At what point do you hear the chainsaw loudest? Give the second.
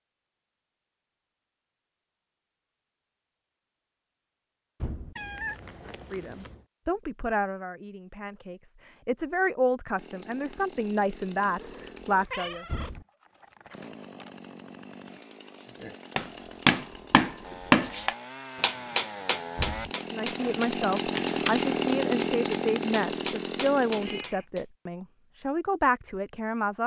22 s.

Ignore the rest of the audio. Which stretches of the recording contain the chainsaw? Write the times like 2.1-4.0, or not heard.
9.9-24.2.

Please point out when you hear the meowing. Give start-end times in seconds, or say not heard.
5.2-6.7, 11.6-13.0, 23.9-24.4.